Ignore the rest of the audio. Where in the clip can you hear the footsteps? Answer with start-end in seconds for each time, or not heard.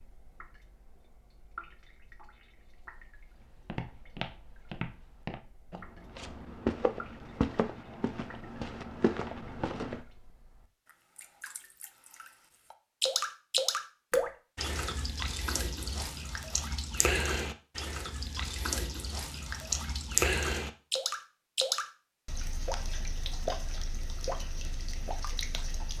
3.4-10.0.